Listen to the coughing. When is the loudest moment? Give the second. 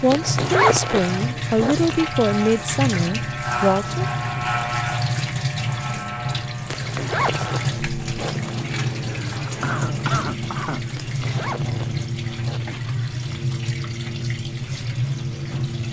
10 s.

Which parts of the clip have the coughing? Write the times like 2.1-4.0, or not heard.
9.0-10.8.